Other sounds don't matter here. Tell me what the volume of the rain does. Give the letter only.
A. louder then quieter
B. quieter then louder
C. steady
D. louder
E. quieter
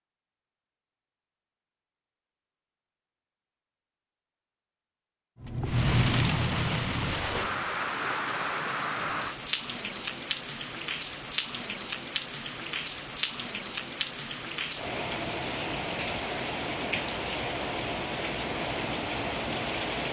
C.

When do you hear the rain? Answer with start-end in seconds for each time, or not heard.
5.7-20.0.